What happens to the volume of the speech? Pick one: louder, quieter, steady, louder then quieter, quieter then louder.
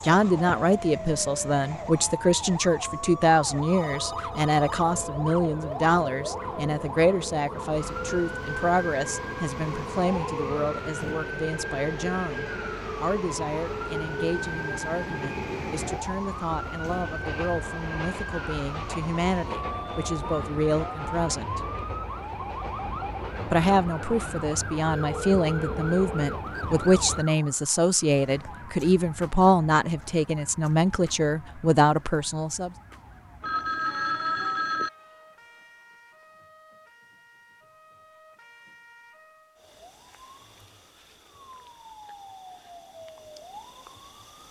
quieter then louder.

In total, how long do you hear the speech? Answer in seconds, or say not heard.
31 s.